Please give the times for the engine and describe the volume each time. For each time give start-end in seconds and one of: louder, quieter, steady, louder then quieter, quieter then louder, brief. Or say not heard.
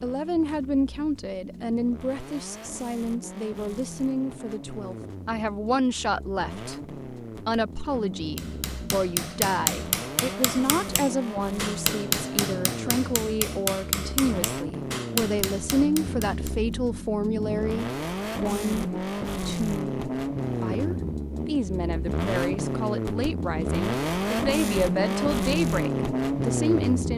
0.0-27.1 louder.